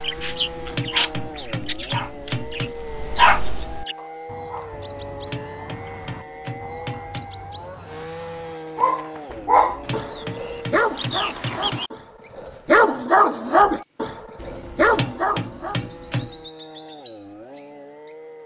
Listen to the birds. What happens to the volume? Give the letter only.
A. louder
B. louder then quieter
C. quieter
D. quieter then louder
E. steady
C.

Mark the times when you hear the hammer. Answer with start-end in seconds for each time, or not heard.
0.1-2.8, 4.7-7.3, 9.2-11.8, 14.3-16.4.